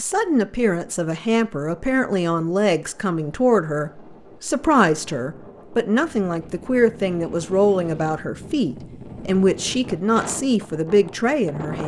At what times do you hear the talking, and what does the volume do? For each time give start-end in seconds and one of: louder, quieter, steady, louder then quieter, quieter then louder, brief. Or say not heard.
0.0-11.8 steady.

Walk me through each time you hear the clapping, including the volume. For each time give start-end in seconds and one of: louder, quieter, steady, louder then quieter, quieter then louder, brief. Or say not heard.
not heard.